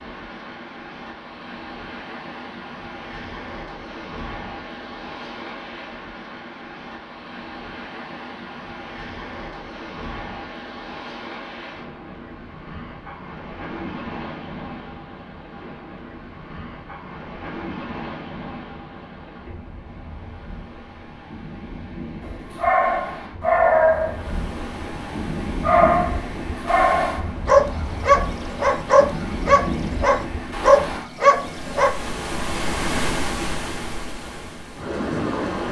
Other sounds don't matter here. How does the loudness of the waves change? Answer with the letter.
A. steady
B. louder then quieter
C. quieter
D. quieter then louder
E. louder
E.